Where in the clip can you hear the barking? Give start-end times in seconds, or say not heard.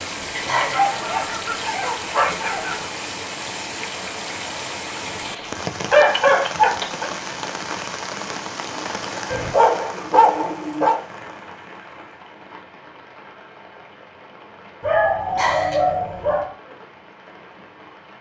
0.3-2.9, 5.2-7.1, 9.3-11.0, 14.8-16.5.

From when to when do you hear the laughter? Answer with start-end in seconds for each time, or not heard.
0.5-0.9, 15.3-15.9.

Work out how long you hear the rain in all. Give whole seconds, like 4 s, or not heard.
18 s.